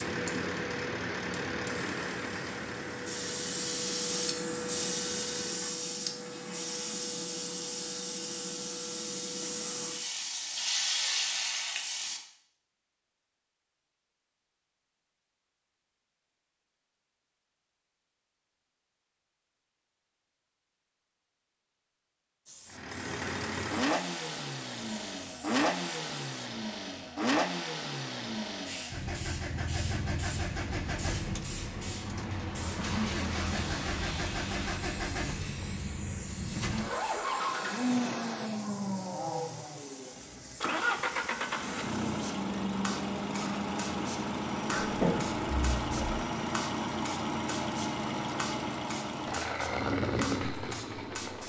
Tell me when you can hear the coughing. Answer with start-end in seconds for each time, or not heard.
44.7-46.2.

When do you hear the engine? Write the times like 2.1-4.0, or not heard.
0.0-5.8, 22.6-51.4.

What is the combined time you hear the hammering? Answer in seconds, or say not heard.
not heard.